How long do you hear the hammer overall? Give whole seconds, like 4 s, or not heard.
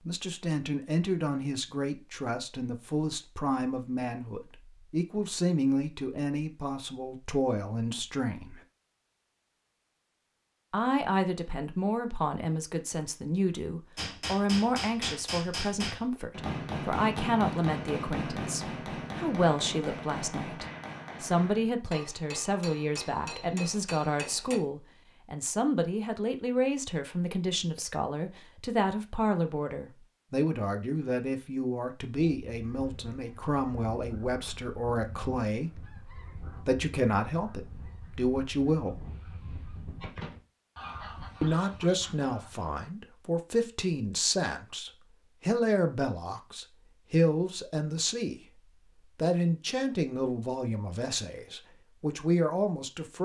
11 s.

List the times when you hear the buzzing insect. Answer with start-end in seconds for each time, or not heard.
not heard.